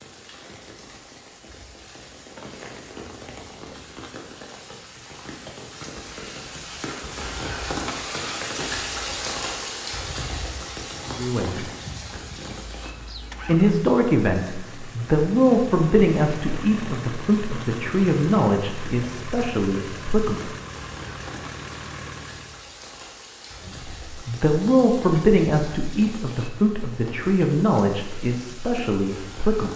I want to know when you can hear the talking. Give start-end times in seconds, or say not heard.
11.1-11.7, 13.4-20.5, 23.6-29.7.